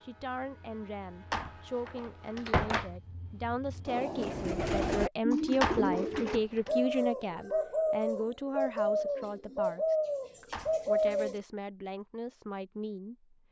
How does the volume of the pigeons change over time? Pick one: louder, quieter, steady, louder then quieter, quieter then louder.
steady.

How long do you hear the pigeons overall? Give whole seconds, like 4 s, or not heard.
7 s.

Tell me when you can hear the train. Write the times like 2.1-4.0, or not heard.
0.0-4.5.